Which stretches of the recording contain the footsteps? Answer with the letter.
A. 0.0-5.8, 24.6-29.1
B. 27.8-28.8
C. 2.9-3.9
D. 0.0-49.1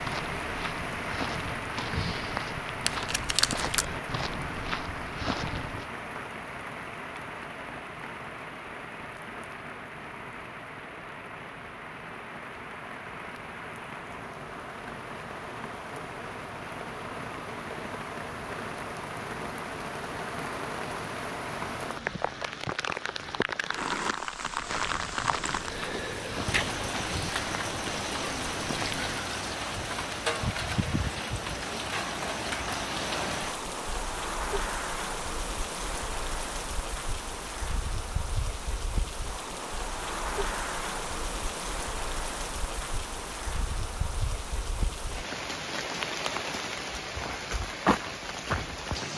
A.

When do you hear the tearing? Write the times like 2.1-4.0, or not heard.
2.9-3.9.